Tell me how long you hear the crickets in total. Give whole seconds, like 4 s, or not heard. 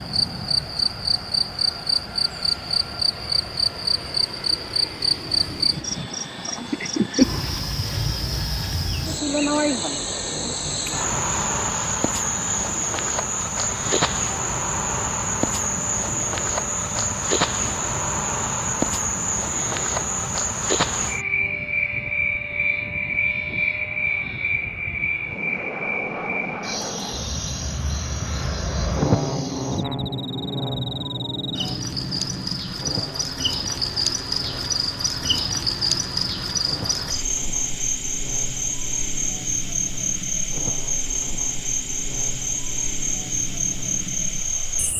45 s.